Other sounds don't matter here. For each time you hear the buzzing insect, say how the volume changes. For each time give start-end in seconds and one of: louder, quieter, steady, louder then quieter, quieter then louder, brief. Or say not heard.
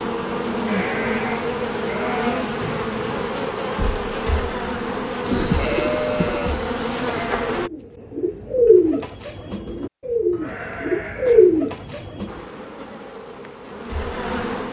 0.0-7.7 steady
12.2-14.6 brief.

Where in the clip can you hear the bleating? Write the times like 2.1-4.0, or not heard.
0.7-2.5, 5.5-7.6, 10.3-12.2.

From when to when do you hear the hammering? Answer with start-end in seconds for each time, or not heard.
not heard.